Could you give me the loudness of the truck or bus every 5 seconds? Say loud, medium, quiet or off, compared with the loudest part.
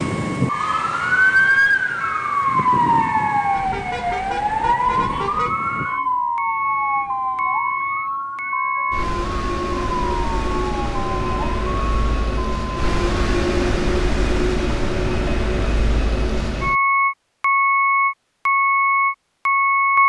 quiet, medium, medium, loud.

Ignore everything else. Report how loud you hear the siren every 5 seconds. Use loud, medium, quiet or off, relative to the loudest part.
loud, medium, medium, off.